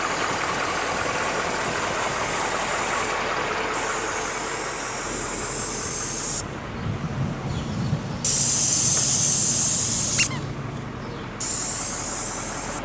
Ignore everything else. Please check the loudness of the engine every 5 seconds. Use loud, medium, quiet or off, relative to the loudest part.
loud, medium, medium.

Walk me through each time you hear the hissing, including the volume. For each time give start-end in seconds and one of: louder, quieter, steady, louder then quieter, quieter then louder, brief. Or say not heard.
0.0-12.7 louder then quieter.